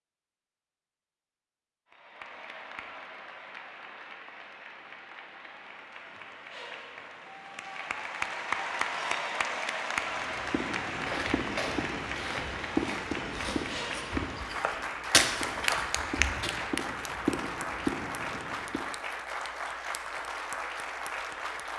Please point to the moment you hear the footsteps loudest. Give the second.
15 s.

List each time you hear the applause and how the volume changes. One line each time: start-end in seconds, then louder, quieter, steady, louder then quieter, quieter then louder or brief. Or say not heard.
1.9-21.7 louder.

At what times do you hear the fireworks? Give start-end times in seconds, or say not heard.
10.1-18.9.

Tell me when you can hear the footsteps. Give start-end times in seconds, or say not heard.
11.1-16.6.